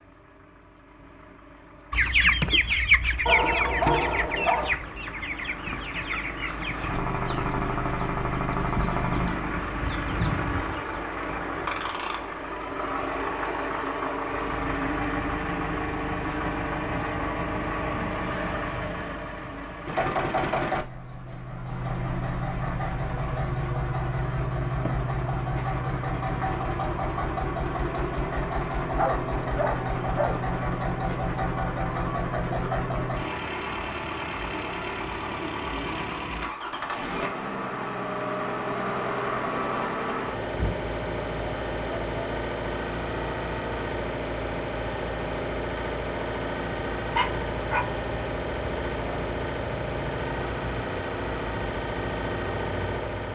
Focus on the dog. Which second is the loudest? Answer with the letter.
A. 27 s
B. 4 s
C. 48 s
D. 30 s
B.